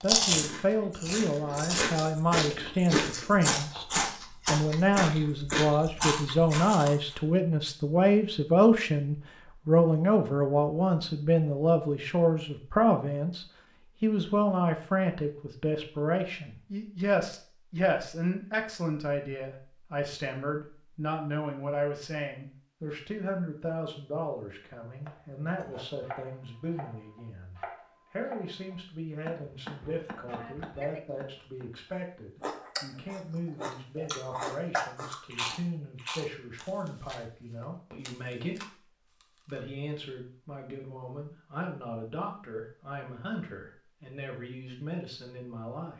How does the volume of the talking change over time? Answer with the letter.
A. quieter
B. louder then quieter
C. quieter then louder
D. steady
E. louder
A.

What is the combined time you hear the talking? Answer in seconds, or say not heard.
46 s.